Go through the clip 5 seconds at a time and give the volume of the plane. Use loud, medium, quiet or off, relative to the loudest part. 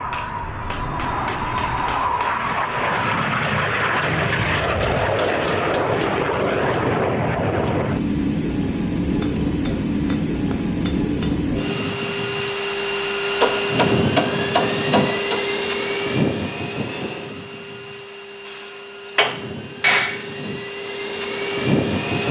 loud, loud, loud, medium, loud.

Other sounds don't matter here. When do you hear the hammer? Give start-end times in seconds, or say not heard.
0.1-2.5, 4.5-6.2, 9.2-11.4, 13.4-15.4, 18.4-20.3.